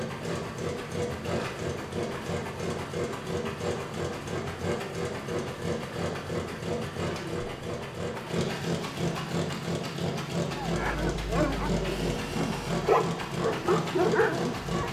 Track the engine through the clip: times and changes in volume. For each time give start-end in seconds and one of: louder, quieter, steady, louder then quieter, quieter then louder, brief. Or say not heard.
0.0-14.8 steady.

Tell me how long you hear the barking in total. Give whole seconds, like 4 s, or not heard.
4 s.